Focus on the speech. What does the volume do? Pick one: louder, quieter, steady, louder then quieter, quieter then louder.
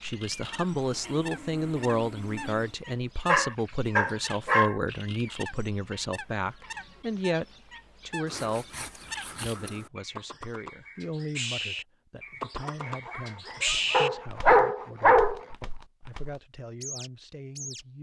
quieter.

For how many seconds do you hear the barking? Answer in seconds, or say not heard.
3 s.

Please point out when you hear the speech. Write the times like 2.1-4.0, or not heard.
0.0-7.5, 8.1-17.9.